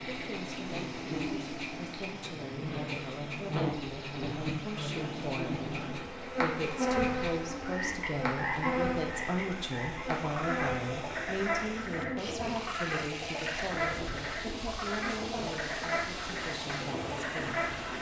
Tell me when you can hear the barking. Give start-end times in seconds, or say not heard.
not heard.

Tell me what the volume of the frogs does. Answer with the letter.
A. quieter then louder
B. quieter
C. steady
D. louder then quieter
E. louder
E.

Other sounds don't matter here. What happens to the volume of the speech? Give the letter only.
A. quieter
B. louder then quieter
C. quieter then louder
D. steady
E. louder
B.